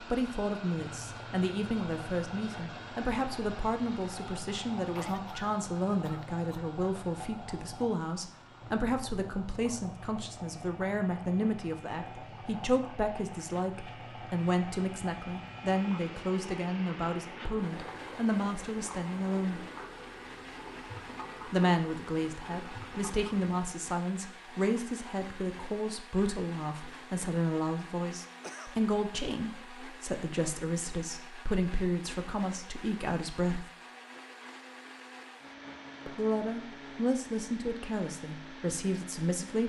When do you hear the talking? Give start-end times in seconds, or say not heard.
0.0-19.6, 21.4-33.6, 36.0-39.6.